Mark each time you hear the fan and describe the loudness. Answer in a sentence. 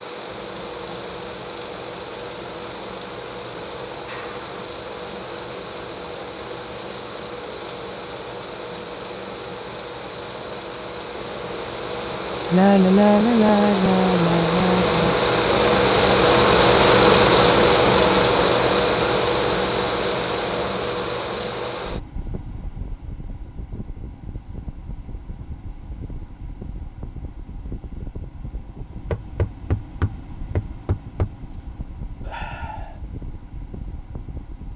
You can hear the fan from 0.0 to 34.7 s, getting louder then quieter.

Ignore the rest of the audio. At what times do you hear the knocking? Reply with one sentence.
You can hear the knocking from 29.1 to 31.3 s.